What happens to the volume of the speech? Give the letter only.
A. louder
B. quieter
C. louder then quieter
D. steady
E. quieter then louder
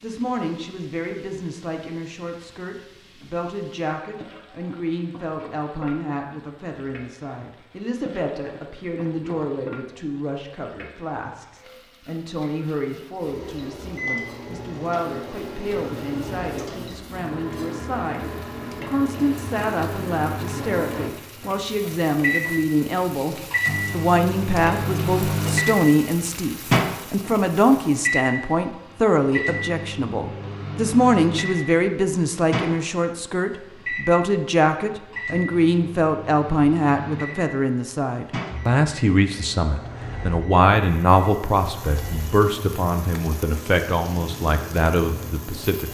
A.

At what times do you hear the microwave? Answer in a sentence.
You can hear the microwave from 13.2 to 45.8 s.